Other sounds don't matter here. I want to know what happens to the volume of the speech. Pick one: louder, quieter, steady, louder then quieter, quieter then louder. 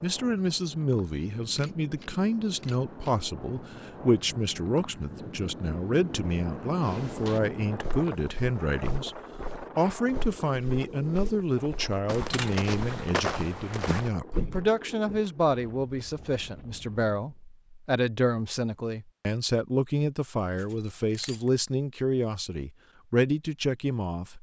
steady.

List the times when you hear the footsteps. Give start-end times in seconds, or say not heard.
6.8-15.2.